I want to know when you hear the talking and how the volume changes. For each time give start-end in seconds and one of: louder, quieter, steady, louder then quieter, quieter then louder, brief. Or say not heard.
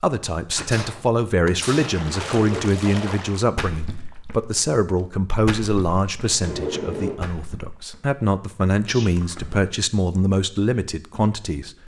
0.0-11.8 steady.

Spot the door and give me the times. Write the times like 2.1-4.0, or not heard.
2.3-2.8, 6.2-7.2.